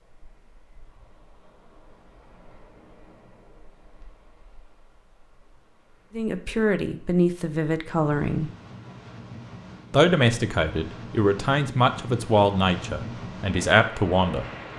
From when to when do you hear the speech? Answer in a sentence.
The speech can be heard from 6.2 to 8.5 s and from 9.9 to 14.4 s.